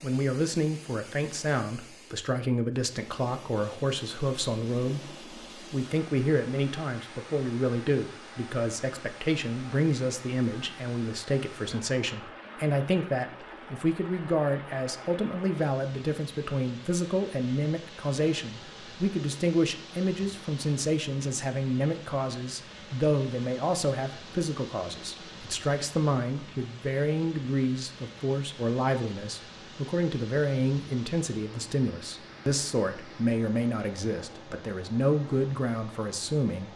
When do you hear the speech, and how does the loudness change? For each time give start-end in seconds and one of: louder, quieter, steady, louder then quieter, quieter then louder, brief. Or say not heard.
0.0-36.7 steady.